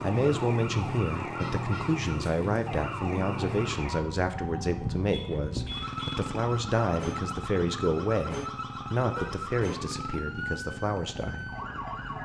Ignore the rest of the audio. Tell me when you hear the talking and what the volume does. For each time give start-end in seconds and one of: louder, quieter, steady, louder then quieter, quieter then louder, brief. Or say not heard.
0.0-11.5 steady.